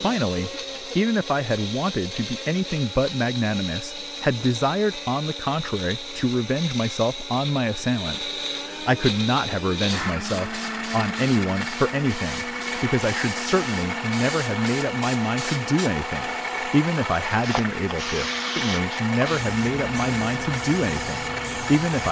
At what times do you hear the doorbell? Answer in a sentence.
The doorbell can't be heard in this clip.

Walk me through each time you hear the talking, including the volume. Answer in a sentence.
The talking can be heard from 0.0 to 22.0 s, at a steady volume.